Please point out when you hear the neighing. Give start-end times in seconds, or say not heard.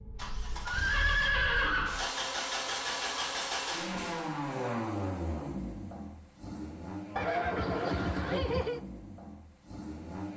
0.7-2.1, 7.2-8.8.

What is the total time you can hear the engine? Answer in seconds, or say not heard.
10 s.